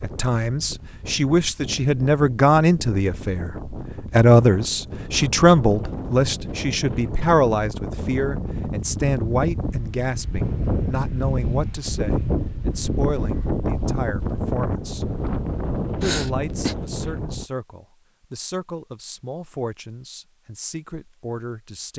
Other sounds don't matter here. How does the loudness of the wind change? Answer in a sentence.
The loudness of the wind goes up.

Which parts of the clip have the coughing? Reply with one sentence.
You can hear the coughing from 16.0 to 16.8 s.